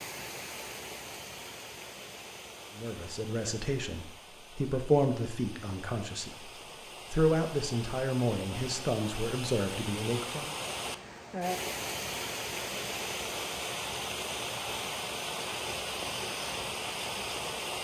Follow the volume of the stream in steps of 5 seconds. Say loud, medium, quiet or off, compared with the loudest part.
medium, medium, loud, loud.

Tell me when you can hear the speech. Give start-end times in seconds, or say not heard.
2.8-6.5, 7.1-10.5.